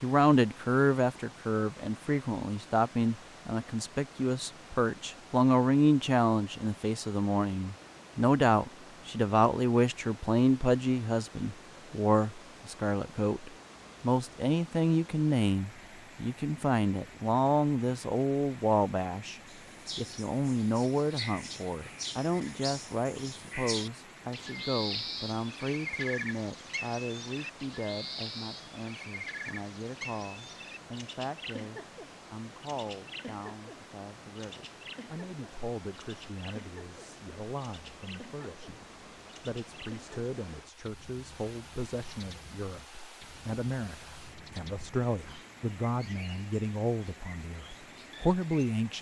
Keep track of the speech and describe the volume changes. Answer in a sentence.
The loudness of the speech goes down, then up.